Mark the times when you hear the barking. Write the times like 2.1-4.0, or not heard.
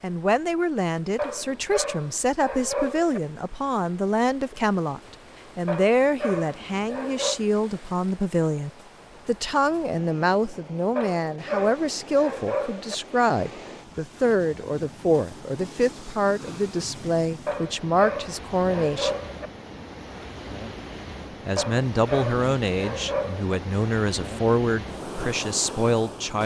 1.1-3.2, 5.7-7.4, 10.9-12.9, 17.4-19.5, 21.6-23.6.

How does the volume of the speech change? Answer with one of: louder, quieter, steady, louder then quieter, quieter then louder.
steady.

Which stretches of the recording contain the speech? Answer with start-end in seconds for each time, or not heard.
0.0-19.1, 21.4-26.4.